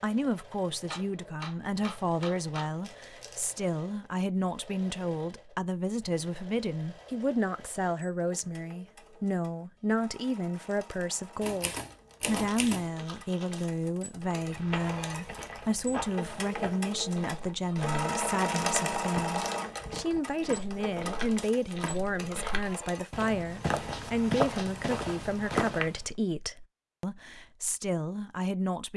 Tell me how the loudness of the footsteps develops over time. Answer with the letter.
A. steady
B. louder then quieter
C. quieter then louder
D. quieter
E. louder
E.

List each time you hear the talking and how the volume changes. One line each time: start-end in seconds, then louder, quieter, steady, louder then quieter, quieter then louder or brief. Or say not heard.
0.0-28.9 steady.